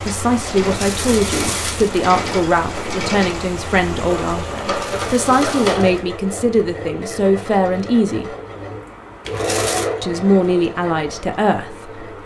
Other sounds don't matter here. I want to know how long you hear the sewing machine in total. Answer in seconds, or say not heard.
12 s.